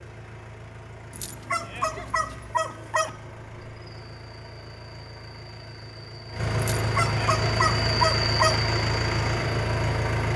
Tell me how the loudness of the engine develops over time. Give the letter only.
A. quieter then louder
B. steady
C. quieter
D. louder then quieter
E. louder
E.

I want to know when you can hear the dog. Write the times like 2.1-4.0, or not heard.
1.1-3.1, 6.5-8.6.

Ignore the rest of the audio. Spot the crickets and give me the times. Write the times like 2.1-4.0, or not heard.
3.0-10.3.